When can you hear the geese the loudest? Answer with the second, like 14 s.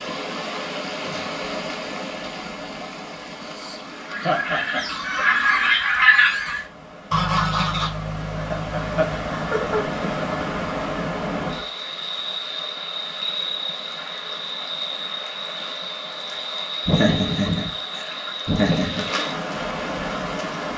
6 s.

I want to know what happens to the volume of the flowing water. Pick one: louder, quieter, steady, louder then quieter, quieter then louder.
quieter then louder.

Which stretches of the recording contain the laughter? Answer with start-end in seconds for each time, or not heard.
4.2-4.8, 8.5-10.2, 16.9-19.1.